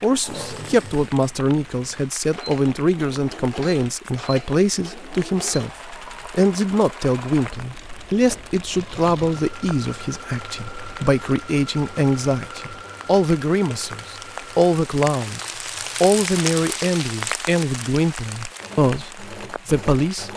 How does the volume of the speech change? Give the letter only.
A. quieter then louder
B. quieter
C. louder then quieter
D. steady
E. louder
D.